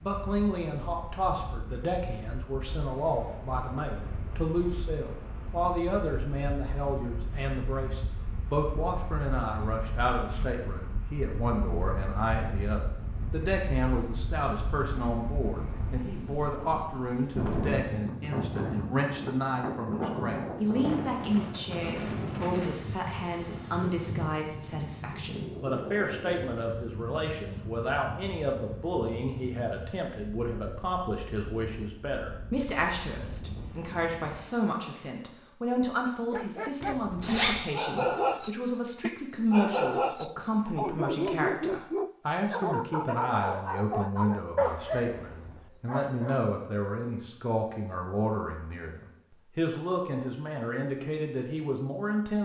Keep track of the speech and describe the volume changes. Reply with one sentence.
The loudness of the speech stays about the same.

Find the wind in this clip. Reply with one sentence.
The wind can be heard from 0.0 to 34.5 s.